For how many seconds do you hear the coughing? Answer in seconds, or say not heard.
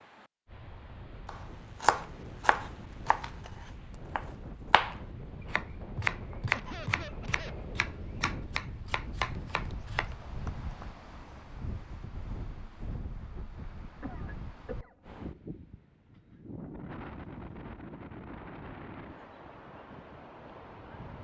2 s.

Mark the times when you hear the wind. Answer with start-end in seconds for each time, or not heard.
0.0-21.1.